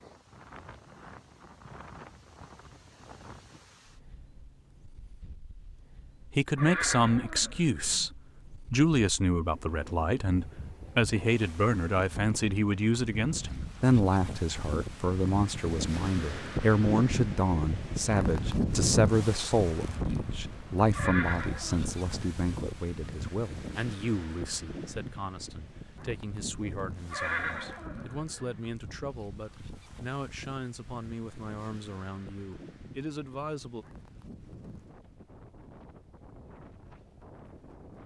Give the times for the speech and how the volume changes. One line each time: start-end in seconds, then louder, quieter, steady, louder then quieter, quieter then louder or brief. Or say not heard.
6.3-33.9 quieter.